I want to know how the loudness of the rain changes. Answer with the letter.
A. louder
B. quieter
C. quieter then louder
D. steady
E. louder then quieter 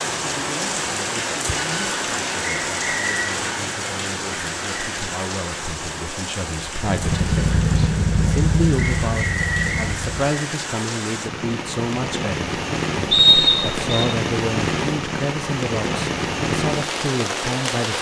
C.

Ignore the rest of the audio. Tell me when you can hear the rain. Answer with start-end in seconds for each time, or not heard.
0.0-17.9.